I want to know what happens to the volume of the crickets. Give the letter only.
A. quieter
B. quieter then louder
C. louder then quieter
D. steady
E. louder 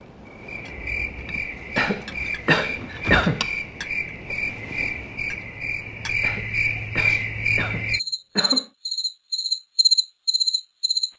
E.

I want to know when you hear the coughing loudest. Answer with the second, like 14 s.
3 s.